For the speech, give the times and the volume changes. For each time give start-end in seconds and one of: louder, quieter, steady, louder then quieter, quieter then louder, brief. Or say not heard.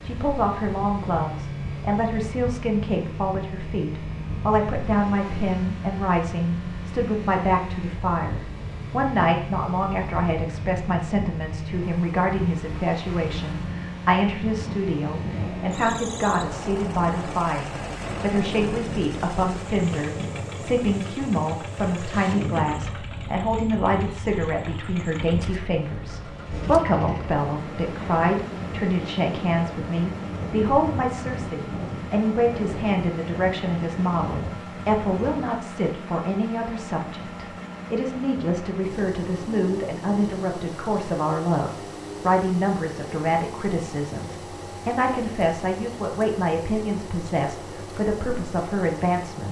0.1-49.4 steady.